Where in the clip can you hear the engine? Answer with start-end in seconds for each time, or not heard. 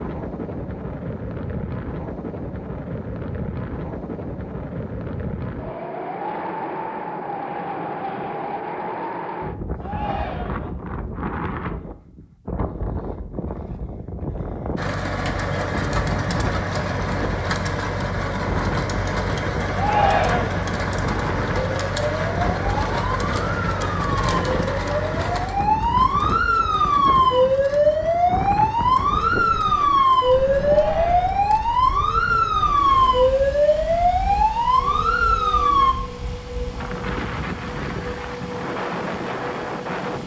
14.8-40.2.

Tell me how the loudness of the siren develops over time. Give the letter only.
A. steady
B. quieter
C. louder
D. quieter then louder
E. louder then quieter
C.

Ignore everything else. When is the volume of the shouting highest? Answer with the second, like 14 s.
20 s.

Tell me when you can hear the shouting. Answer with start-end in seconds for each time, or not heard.
9.8-10.7, 19.8-20.6, 30.6-31.5.